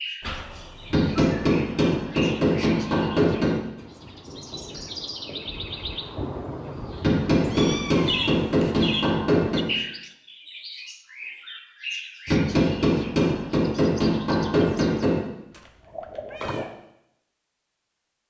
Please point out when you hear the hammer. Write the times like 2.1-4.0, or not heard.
0.9-3.6, 7.0-9.7, 12.2-15.2.